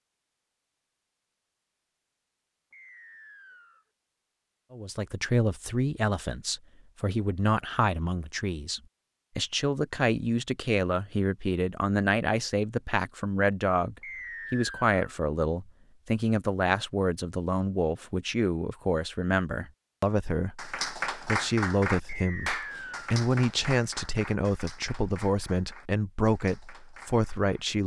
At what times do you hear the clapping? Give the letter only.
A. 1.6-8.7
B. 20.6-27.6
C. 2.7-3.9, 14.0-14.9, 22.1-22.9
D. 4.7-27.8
B.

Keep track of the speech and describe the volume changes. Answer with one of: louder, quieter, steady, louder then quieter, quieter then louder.
steady.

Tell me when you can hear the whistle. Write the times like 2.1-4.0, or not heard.
2.7-3.9, 14.0-14.9, 22.1-22.9.